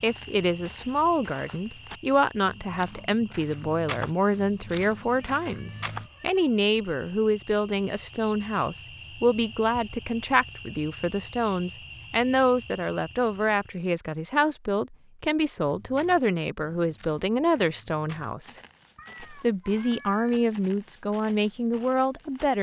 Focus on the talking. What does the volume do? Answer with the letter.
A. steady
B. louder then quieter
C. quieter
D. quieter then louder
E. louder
A.